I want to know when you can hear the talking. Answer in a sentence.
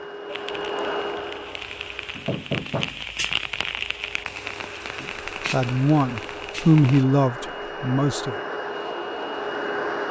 The talking can be heard from 5.0 to 8.3 s.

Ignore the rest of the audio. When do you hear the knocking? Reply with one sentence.
You can hear the knocking from 2.1 to 3.0 s.